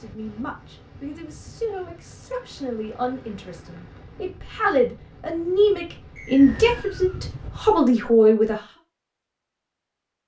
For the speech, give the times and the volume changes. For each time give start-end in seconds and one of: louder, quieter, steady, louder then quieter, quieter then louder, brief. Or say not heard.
0.0-8.6 louder.